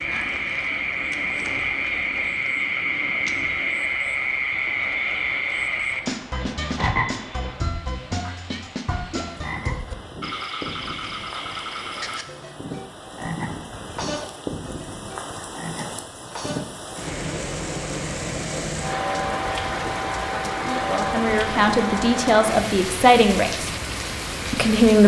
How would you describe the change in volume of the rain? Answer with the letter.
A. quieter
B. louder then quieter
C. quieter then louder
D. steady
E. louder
E.